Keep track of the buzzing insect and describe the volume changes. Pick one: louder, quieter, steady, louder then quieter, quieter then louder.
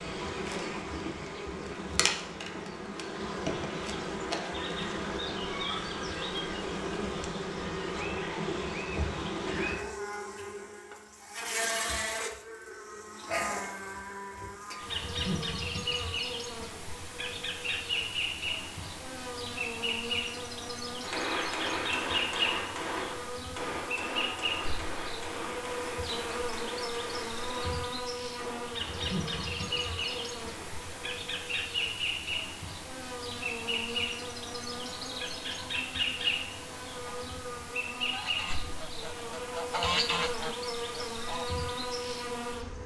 steady.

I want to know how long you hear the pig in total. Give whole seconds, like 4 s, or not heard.
not heard.